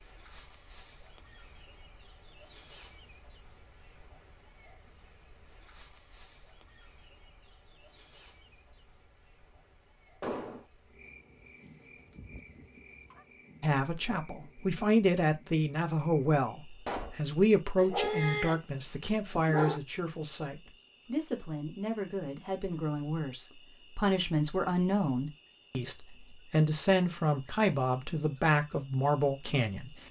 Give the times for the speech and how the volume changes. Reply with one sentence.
You can hear the speech from 13.6 to 30.0 s, getting quieter then louder.